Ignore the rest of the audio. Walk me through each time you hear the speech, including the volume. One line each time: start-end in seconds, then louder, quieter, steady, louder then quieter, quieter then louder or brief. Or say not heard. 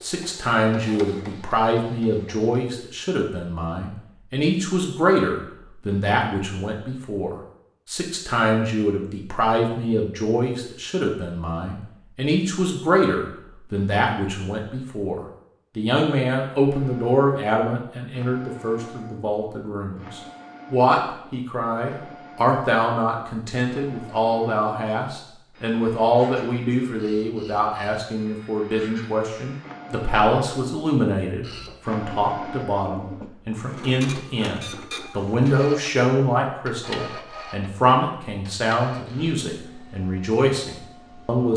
0.0-41.5 steady.